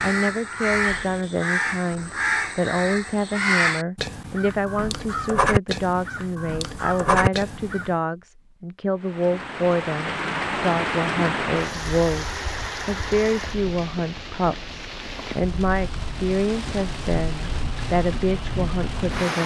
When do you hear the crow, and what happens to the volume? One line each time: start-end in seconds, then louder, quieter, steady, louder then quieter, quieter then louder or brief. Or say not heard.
0.0-8.0 steady.